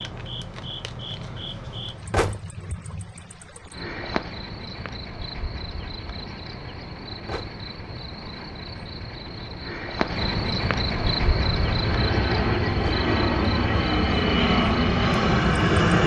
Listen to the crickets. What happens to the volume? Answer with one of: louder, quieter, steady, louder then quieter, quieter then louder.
louder.